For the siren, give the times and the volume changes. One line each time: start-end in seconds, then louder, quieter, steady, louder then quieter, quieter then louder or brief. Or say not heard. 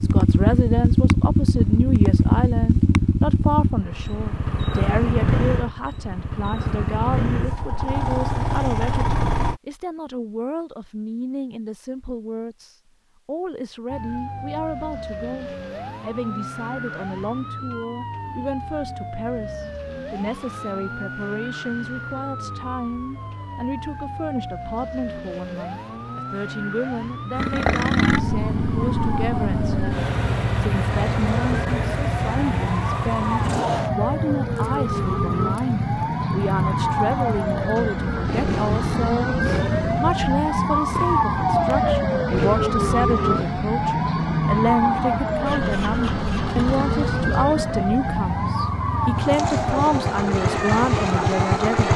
13.8-51.8 louder.